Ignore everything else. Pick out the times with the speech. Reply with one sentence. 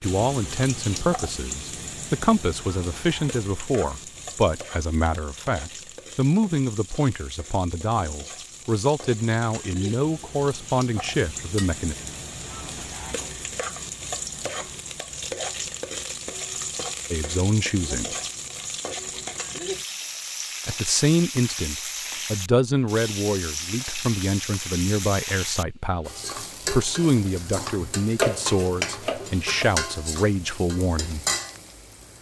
You can hear the speech from 0.0 to 11.9 s, from 17.1 to 18.1 s and from 20.6 to 31.2 s.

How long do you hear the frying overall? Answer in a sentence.
You can hear the frying for 32 seconds altogether.